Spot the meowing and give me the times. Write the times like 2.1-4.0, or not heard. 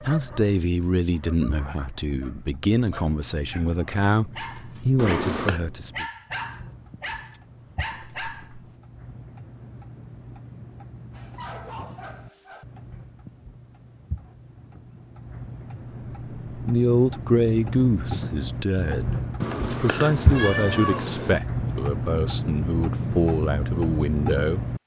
5.0-5.6, 19.4-21.4.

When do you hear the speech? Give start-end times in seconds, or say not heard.
0.0-6.0, 16.5-24.6.